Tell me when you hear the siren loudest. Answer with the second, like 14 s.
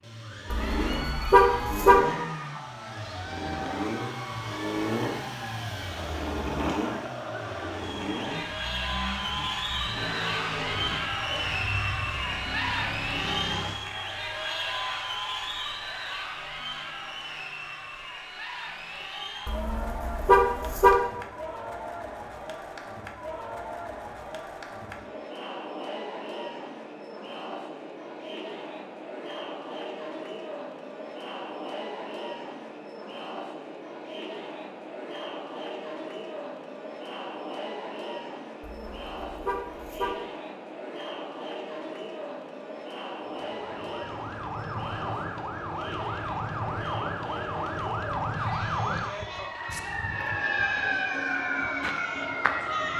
51 s.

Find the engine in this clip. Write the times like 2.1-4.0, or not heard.
0.0-13.8.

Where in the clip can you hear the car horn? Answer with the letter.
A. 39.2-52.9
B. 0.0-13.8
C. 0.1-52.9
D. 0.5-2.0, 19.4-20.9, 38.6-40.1
D.